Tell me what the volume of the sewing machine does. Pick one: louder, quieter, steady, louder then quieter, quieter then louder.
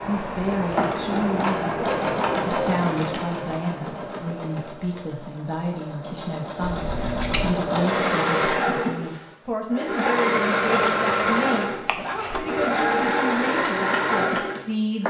quieter then louder.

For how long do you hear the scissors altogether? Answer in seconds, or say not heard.
4 s.